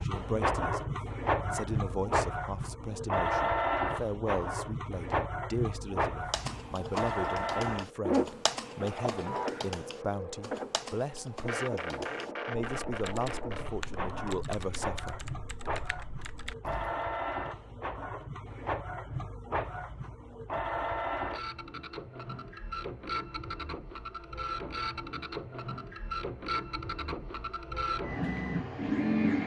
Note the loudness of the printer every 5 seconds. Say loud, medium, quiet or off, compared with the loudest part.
loud, loud, medium, medium, medium, loud.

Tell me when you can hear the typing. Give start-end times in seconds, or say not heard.
6.3-17.1.